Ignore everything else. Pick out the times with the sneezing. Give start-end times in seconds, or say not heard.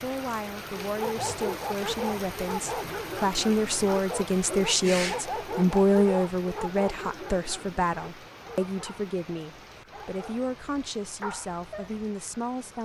4.3-5.8.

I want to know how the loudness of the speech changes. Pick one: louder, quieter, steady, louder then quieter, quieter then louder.
louder then quieter.